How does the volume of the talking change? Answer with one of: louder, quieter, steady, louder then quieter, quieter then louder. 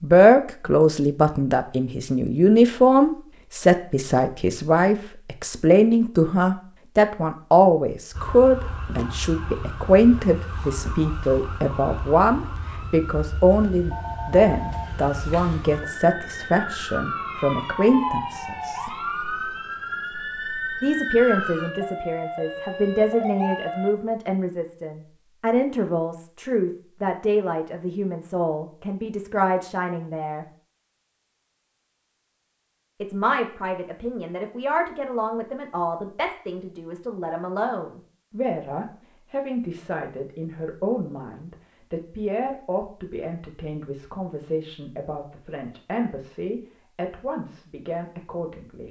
quieter.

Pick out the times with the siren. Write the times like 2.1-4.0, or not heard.
8.1-23.9.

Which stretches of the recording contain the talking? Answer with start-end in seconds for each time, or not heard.
0.0-18.9, 20.8-30.4, 33.0-48.8.